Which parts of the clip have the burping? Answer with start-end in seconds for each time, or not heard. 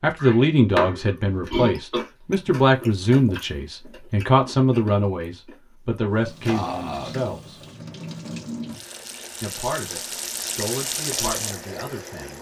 0.1-2.0, 6.5-7.2.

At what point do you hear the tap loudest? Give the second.
11 s.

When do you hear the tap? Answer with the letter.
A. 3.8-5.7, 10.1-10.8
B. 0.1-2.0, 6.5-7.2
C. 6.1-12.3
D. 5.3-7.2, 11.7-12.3
C.